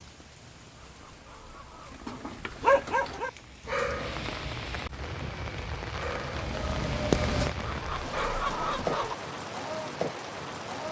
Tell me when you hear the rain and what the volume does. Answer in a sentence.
The rain can be heard from 0.0 to 10.8 s, getting louder.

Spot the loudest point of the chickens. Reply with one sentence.
The volume of the chickens peaks at 9 seconds.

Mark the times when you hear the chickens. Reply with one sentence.
The chickens can be heard from 0.8 to 2.1 s and from 7.6 to 9.2 s.